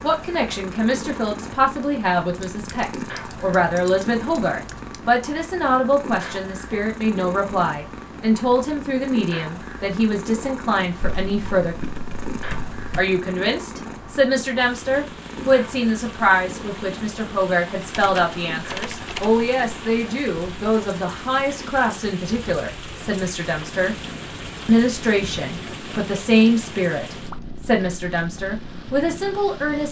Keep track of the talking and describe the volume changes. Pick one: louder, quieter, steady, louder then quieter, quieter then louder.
steady.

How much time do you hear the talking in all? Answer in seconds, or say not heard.
28 s.